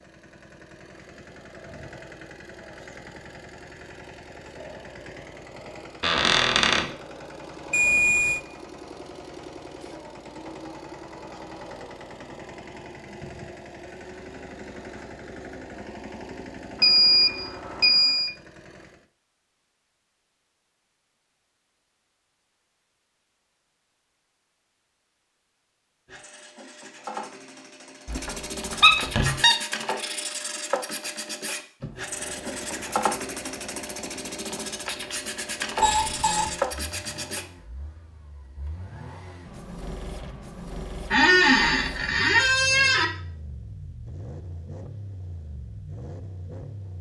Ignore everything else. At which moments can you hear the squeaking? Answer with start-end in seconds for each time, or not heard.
6.0-6.8, 28.1-29.6, 41.1-43.0.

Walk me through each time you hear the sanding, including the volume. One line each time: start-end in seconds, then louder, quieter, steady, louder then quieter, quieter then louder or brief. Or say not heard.
26.1-37.5 louder.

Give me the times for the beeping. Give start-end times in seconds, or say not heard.
7.7-8.4, 16.8-18.3, 35.8-36.5.